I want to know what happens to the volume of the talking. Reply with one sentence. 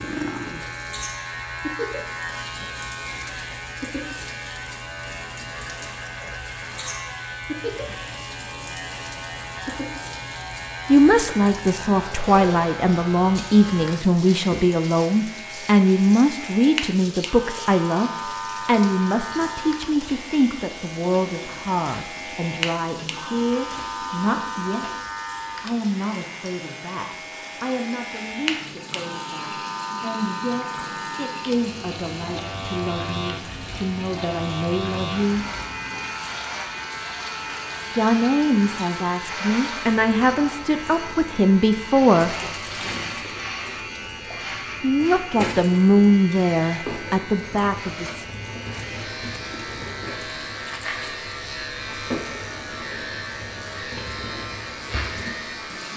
The loudness of the talking goes down, then up.